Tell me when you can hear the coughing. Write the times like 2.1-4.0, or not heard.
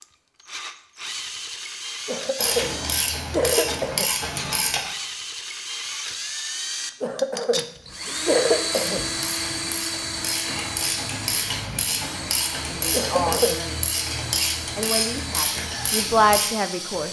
2.0-4.0, 7.0-9.0, 12.9-13.6.